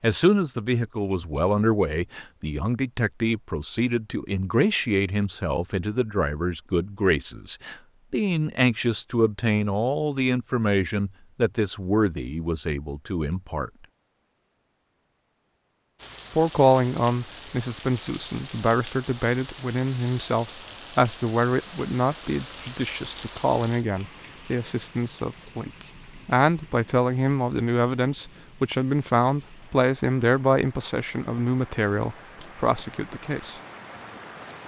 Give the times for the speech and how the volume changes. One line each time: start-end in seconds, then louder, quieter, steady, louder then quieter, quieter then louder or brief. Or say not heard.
0.0-13.7 steady
16.3-33.6 steady.